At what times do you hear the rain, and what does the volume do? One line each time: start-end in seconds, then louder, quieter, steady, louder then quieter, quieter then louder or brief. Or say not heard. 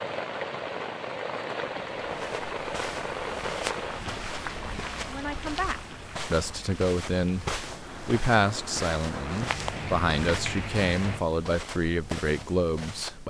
0.0-11.2 quieter then louder.